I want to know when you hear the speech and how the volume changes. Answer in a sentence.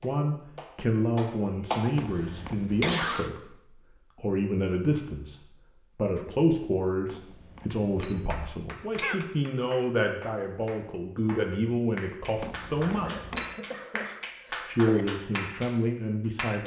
You can hear the speech from 0.0 to 13.2 s, at a steady volume; and briefly from 14.5 to 16.6 s.